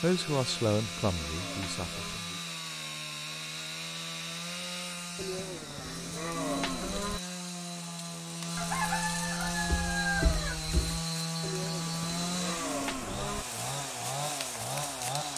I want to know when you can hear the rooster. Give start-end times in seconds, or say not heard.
8.6-10.6.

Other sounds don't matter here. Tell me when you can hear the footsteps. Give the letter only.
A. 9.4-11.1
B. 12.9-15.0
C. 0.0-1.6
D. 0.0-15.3
A.